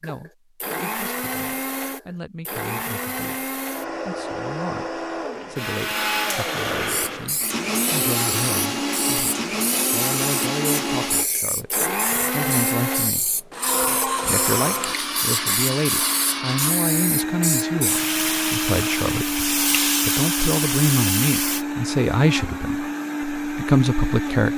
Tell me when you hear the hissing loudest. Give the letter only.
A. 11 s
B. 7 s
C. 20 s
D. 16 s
C.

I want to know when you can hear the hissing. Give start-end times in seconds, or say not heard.
6.8-21.6.